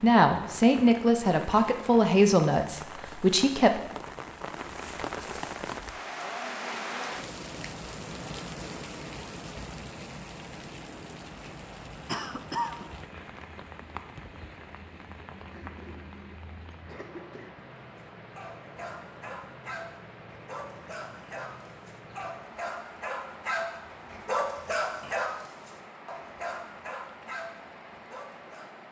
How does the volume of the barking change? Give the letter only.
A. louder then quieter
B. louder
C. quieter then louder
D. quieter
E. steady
A.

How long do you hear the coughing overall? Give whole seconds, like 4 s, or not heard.
3 s.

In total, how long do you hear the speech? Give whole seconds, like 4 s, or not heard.
4 s.